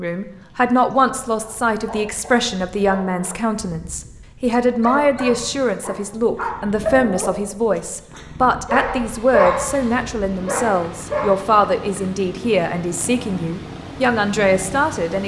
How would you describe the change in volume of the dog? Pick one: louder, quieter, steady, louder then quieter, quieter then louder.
louder.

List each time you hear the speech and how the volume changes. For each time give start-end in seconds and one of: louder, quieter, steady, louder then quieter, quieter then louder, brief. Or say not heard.
0.0-15.2 steady.